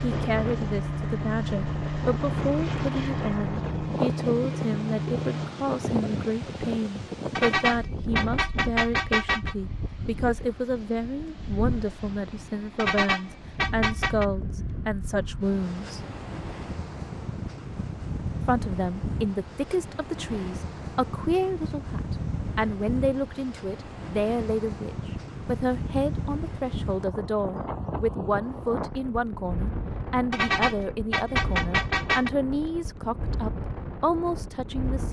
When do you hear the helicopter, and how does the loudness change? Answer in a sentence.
You can hear the helicopter from 0.0 to 5.5 s, at a steady volume.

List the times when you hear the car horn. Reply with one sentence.
You can hear the car horn from 7.3 to 9.6 s, from 12.8 to 14.2 s and from 30.3 to 32.3 s.